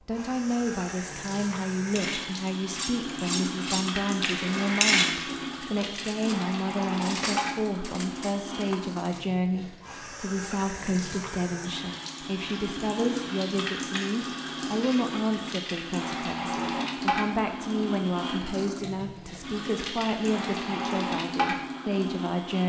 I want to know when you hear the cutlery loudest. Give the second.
5 s.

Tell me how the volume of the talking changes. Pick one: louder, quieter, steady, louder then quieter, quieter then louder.
steady.